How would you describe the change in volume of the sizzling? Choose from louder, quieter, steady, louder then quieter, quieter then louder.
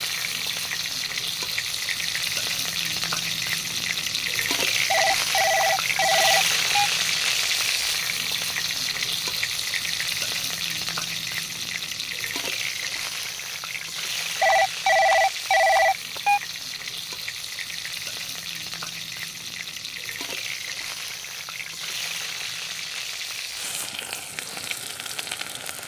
quieter.